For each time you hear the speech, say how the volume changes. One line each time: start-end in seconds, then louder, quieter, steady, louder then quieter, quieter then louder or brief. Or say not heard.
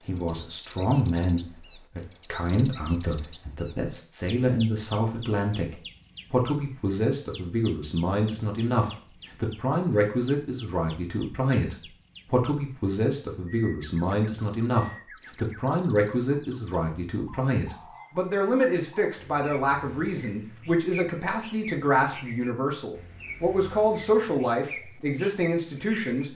0.1-26.3 steady.